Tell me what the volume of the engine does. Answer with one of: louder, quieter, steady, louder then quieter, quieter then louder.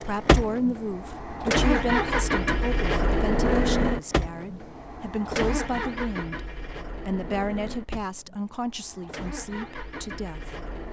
quieter.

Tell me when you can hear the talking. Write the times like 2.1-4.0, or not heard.
0.0-10.4.